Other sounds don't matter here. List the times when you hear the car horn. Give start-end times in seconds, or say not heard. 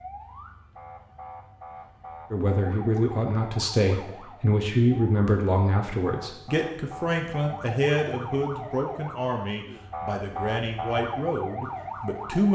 not heard.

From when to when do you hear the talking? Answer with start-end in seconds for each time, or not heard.
2.3-12.5.